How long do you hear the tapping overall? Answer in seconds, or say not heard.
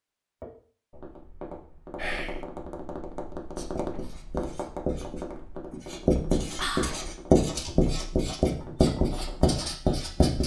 9 s.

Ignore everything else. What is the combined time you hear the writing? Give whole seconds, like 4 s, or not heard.
7 s.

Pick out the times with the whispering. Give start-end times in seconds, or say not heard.
1.9-2.5, 6.5-7.0.